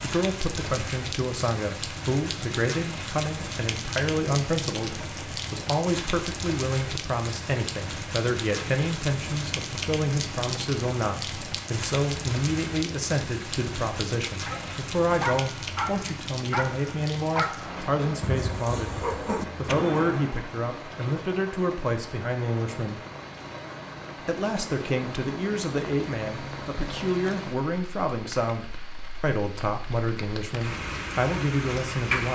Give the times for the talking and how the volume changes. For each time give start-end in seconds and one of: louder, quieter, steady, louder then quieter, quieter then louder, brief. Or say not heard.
0.0-23.0 steady
24.2-32.3 steady.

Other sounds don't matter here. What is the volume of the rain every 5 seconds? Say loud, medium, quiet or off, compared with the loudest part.
loud, loud, loud, medium, medium, medium, loud.